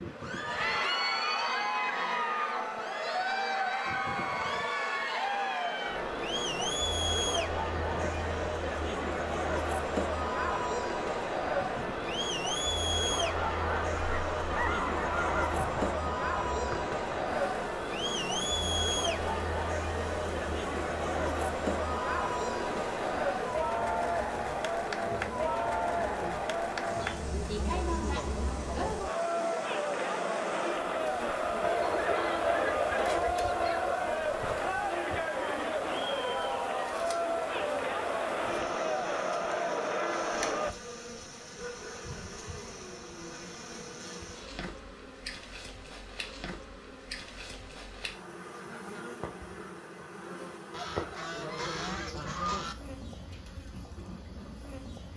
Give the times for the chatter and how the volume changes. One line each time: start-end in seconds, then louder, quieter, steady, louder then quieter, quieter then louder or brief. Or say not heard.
0.1-40.8 steady.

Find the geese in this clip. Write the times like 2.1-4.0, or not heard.
13.2-15.9, 31.6-34.0, 50.7-52.8.